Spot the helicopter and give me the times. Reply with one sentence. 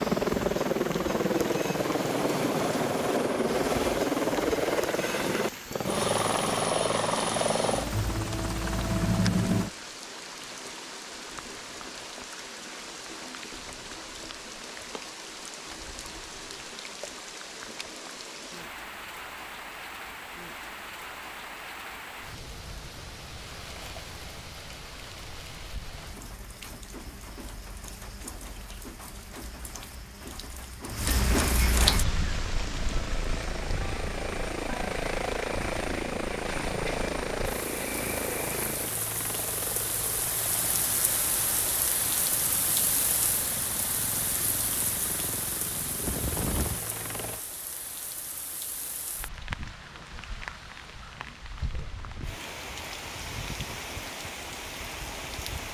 You can hear the helicopter from 0.0 to 9.7 s and from 32.0 to 47.4 s.